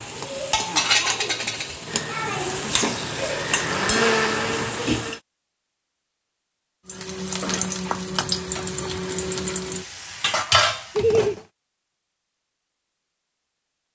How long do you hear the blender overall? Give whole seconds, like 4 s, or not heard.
3 s.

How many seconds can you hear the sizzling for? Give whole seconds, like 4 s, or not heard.
10 s.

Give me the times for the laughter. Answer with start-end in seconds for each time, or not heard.
10.9-11.3.